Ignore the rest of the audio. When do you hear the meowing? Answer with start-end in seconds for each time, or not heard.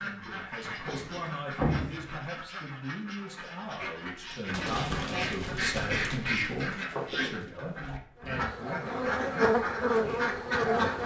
not heard.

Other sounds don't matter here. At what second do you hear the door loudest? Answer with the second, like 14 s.
2 s.